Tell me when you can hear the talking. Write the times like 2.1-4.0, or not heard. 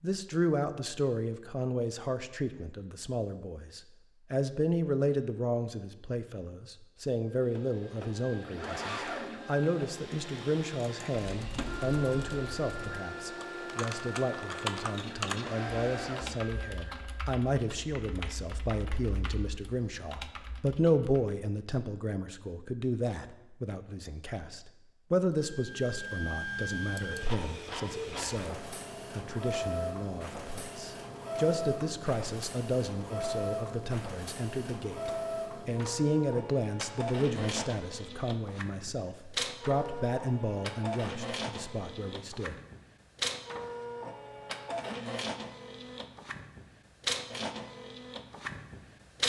0.0-42.5.